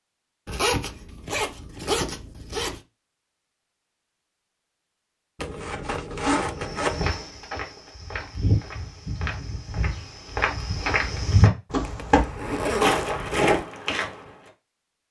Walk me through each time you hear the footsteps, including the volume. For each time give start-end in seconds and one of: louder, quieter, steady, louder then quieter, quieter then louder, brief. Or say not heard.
6.6-14.3 louder.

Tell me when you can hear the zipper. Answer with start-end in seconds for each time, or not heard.
0.5-2.8, 5.3-7.1, 11.7-13.7.